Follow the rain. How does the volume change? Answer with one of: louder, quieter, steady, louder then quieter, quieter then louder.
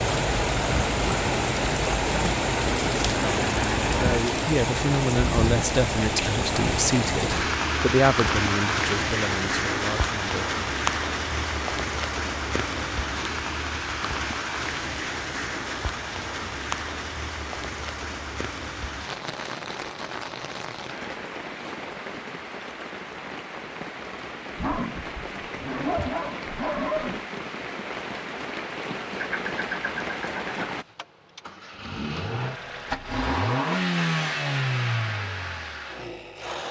quieter.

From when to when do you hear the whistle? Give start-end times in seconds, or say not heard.
not heard.